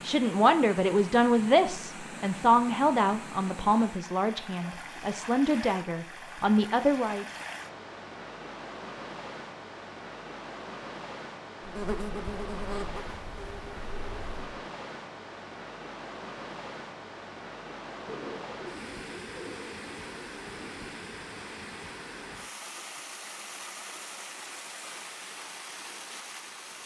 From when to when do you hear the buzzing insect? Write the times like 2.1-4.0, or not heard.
11.6-14.6.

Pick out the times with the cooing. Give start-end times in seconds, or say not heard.
18.1-20.9.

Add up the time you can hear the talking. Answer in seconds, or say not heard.
7 s.